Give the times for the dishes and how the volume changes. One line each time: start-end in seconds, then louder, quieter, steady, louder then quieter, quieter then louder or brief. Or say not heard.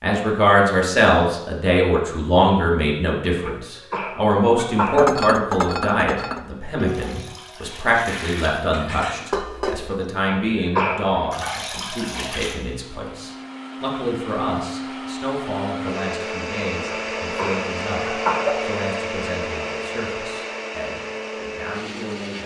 5.0-10.1 quieter then louder.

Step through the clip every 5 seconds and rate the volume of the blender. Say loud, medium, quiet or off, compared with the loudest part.
off, off, medium, loud, loud.